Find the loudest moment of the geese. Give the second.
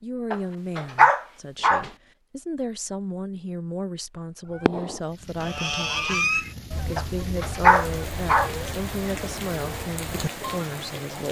6 s.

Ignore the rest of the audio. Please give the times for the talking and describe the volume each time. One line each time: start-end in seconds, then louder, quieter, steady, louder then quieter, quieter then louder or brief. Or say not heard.
0.0-11.2 steady.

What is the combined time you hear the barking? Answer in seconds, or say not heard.
3 s.